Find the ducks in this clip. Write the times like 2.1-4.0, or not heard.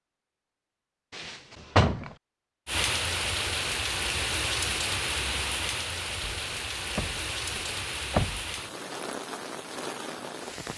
not heard.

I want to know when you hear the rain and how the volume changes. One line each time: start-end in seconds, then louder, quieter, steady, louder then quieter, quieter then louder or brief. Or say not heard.
2.6-10.7 quieter.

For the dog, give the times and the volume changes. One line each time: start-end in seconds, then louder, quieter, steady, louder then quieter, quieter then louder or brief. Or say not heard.
not heard.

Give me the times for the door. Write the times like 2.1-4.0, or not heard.
1.1-2.1, 6.2-8.4.